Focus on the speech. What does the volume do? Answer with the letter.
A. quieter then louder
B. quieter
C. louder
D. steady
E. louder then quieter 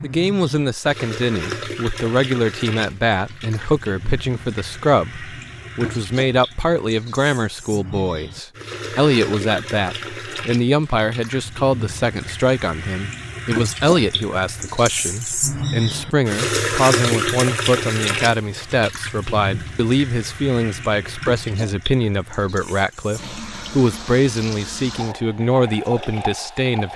D.